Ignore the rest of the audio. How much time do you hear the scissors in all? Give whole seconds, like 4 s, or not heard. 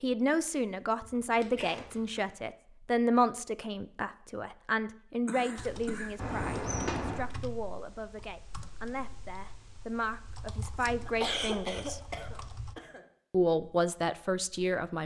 3 s.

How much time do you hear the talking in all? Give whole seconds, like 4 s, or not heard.
14 s.